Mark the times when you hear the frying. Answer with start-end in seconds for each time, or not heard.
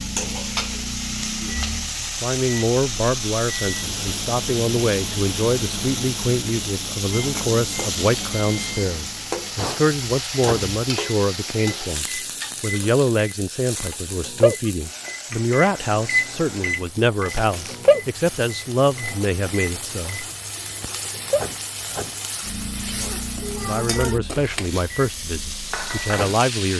0.0-26.7.